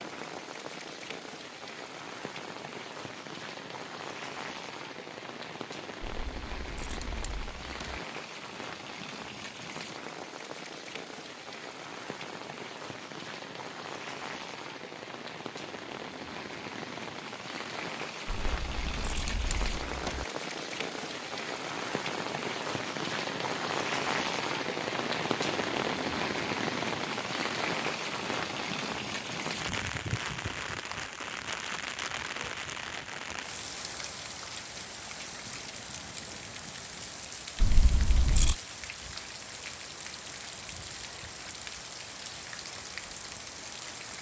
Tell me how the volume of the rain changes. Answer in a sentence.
The loudness of the rain goes up, then down.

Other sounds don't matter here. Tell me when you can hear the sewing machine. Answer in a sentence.
The sewing machine can't be heard in this clip.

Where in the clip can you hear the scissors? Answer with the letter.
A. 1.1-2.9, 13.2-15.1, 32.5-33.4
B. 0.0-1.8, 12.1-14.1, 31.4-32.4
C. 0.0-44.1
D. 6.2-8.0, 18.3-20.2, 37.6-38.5
D.